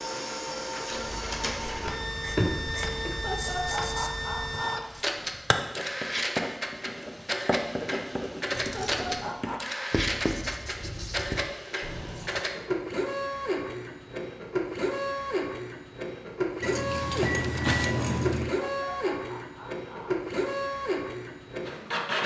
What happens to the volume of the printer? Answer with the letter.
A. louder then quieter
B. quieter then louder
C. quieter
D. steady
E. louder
D.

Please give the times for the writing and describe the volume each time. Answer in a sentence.
The writing can be heard from 0.9 to 12.4 s, getting louder.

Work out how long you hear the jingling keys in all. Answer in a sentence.
You can hear the jingling keys for 4 seconds altogether.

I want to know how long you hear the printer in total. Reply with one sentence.
The printer can be heard for 22 seconds in total.